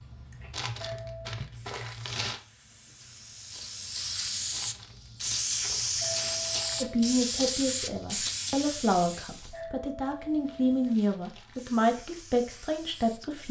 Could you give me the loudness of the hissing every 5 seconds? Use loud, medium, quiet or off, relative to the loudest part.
medium, loud, quiet.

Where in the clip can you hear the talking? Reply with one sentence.
You can hear the talking from 6.8 to 13.4 s.